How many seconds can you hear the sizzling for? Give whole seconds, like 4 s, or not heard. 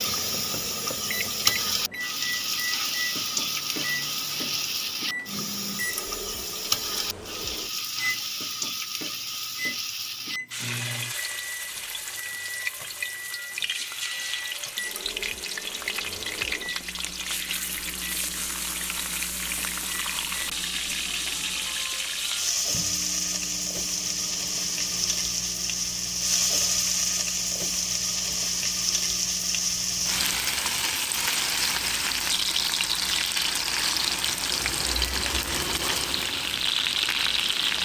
38 s.